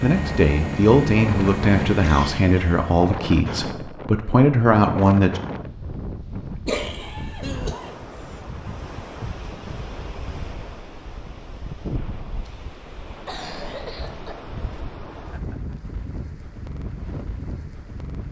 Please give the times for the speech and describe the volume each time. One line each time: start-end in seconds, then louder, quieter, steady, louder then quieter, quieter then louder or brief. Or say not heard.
0.0-5.4 quieter then louder.